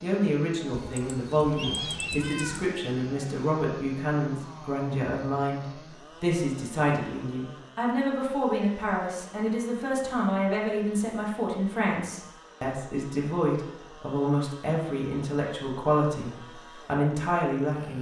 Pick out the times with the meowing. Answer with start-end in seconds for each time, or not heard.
0.8-2.7.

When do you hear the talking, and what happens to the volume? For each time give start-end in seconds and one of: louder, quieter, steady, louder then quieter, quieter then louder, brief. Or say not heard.
0.0-17.9 steady.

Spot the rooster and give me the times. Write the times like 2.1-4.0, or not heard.
not heard.